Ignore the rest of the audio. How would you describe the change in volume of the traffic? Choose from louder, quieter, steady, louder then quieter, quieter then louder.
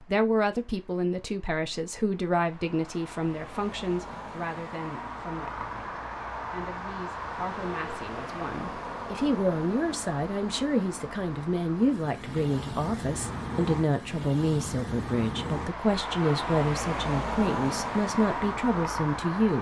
louder.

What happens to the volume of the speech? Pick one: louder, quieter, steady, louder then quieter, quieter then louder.
quieter then louder.